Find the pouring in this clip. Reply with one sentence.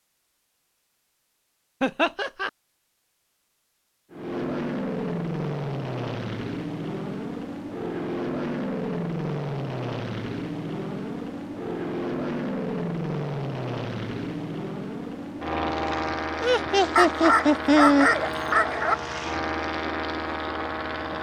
You can't hear the pouring here.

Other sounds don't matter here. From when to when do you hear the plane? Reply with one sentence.
You can hear the plane from 4.1 to 21.1 s.